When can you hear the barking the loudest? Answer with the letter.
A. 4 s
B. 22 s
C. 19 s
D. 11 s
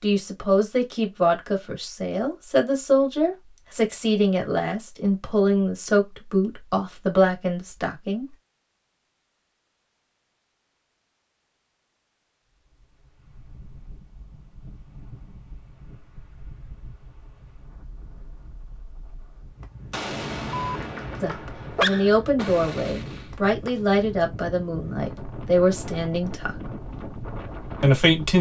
B.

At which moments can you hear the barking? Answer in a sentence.
The barking can be heard from 20.5 to 22.1 s.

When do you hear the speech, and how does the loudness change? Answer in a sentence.
You can hear the speech from 0.0 to 8.2 s, at a steady volume; from 21.2 to 26.6 s, getting quieter then louder; and briefly from 27.8 to 28.3 s.